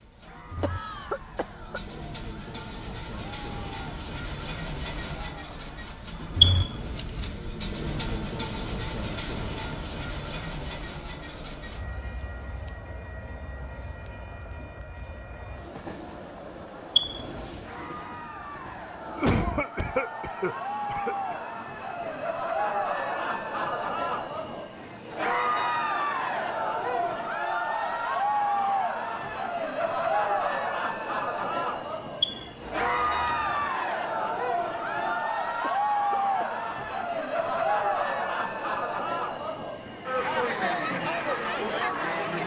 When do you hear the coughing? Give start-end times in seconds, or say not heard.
0.6-1.8, 19.1-21.4, 35.6-36.5.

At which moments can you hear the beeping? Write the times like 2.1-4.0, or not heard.
6.4-7.3, 16.9-17.5, 32.2-33.6.